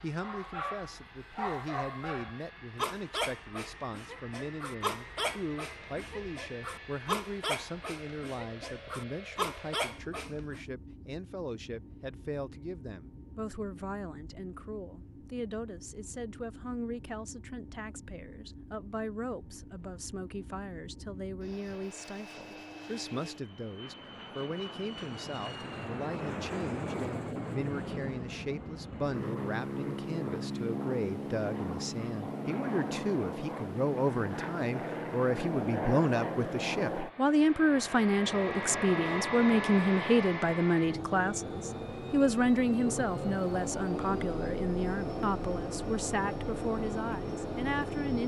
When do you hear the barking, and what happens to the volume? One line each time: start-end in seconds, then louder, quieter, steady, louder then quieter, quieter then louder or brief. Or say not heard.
0.2-10.6 steady.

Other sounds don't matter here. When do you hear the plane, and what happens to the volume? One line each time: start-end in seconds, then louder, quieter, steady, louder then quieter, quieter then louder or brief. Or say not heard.
0.0-48.2 louder.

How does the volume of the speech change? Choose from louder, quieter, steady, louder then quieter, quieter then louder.
louder.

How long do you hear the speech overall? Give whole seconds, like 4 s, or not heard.
48 s.